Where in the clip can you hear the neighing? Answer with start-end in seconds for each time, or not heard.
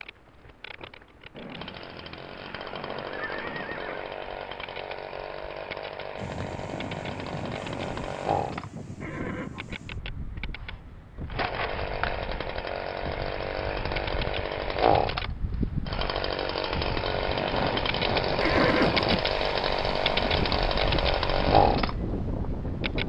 1.4-4.1, 9.0-9.8, 18.4-19.1.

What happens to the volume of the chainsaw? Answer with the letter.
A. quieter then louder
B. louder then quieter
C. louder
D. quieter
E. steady
C.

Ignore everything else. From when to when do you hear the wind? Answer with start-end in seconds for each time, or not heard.
6.2-23.0.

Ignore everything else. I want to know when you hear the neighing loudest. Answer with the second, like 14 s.
19 s.